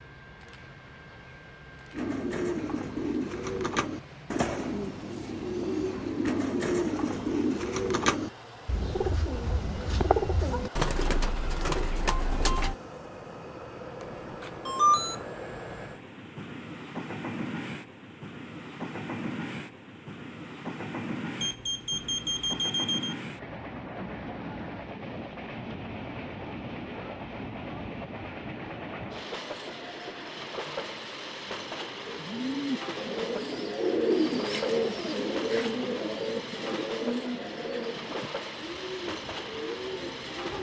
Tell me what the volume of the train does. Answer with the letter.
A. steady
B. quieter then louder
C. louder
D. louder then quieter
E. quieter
C.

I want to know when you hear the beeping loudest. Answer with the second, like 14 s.
15 s.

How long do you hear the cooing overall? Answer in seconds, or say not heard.
19 s.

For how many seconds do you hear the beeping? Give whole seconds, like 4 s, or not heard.
3 s.